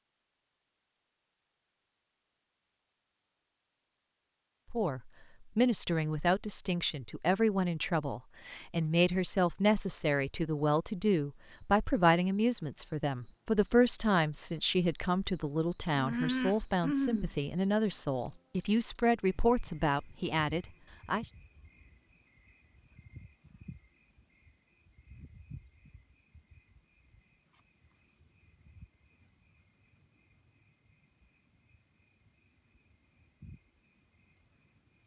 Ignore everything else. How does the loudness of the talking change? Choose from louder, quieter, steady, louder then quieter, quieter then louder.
steady.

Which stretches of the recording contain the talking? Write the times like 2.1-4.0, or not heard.
4.7-21.3.